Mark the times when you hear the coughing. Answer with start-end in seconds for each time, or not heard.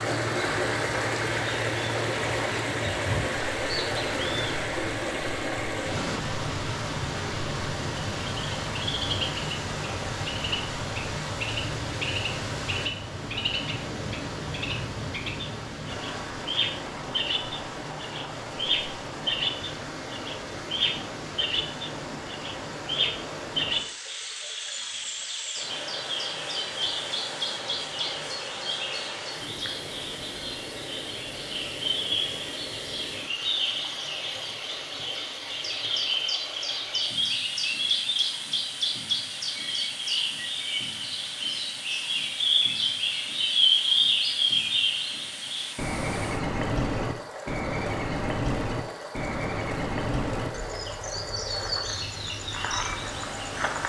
not heard.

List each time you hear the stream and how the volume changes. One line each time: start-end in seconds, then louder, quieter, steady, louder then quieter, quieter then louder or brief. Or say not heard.
0.0-53.8 quieter.